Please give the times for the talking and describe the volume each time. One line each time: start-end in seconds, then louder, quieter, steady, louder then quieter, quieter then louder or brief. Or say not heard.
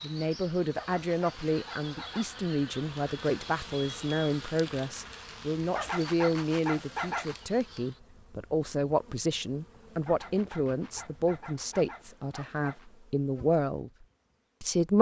0.0-14.9 steady.